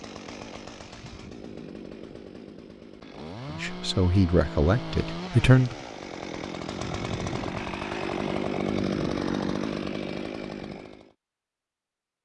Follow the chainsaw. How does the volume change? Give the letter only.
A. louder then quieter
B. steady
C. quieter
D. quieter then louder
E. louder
E.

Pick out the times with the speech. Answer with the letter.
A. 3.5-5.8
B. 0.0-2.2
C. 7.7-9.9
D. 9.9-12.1
A.